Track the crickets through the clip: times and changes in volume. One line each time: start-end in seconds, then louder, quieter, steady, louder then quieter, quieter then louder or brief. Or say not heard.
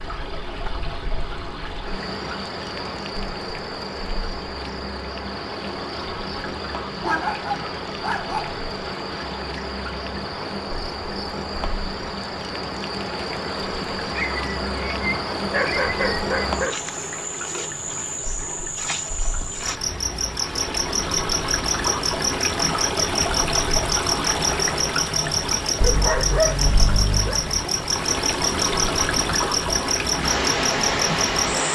0.0-31.7 louder.